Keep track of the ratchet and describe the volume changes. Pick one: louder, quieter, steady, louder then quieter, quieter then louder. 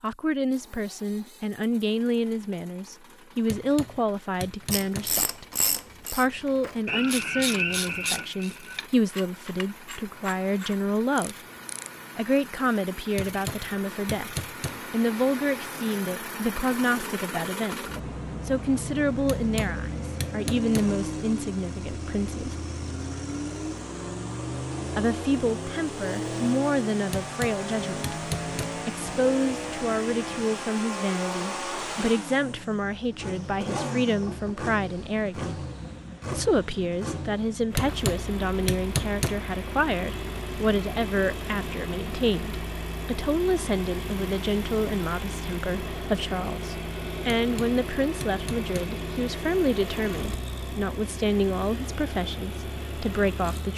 quieter.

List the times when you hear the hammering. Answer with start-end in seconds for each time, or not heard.
3.5-5.2, 13.2-14.8, 19.2-20.9, 27.1-28.8, 37.8-39.4, 47.4-48.9.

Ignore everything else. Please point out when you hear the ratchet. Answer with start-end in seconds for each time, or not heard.
4.7-12.0.